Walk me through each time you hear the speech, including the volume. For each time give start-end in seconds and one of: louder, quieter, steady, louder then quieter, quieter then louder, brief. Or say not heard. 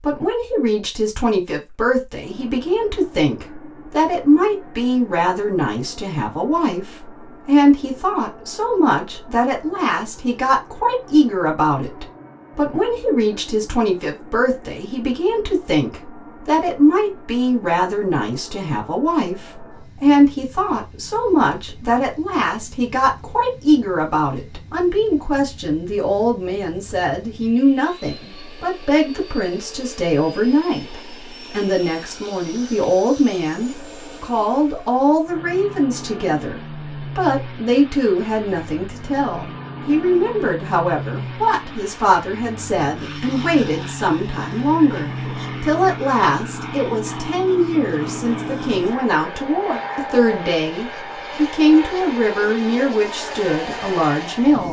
0.0-54.6 steady.